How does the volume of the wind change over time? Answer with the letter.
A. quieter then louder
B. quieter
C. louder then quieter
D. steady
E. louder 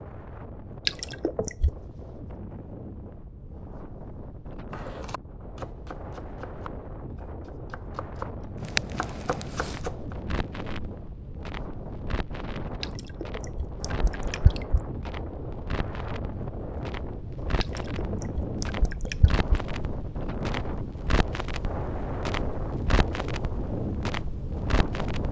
E.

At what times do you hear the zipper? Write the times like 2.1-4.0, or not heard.
not heard.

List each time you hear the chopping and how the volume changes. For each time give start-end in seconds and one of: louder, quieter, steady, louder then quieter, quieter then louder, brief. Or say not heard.
4.7-10.2 quieter then louder.